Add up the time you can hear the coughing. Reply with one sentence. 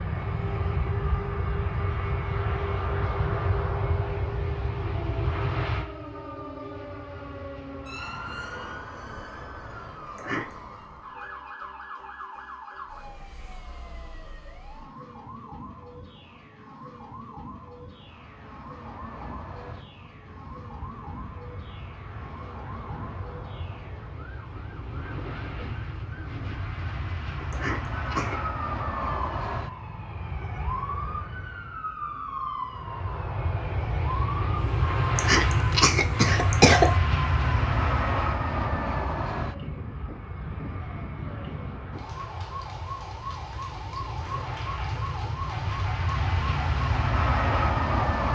You can hear the coughing for 3 seconds altogether.